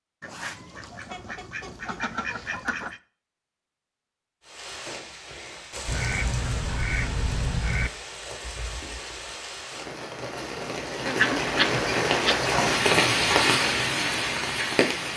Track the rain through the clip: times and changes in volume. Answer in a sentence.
The rain can be heard from 4.4 to 15.1 s, getting louder.